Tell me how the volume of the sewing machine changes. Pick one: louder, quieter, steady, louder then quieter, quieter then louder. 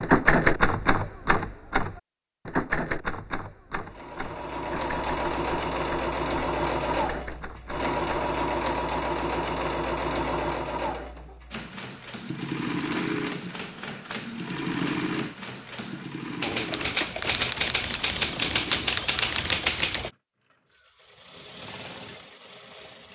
quieter.